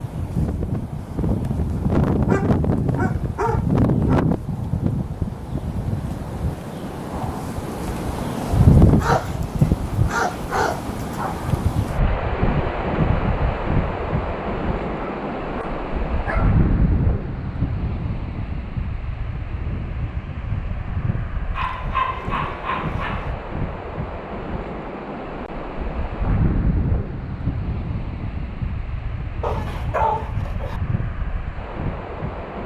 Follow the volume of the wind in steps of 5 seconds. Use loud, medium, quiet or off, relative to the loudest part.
loud, loud, loud, medium, medium, medium, medium.